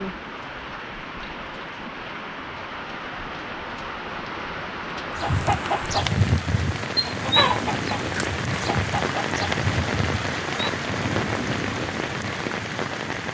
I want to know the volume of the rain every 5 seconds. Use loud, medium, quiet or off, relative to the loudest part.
medium, loud, loud.